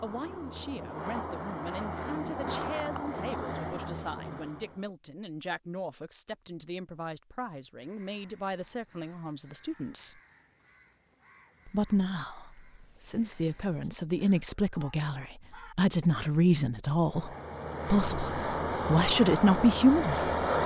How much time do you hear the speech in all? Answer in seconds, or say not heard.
18 s.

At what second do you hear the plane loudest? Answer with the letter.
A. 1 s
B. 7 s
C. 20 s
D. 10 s
C.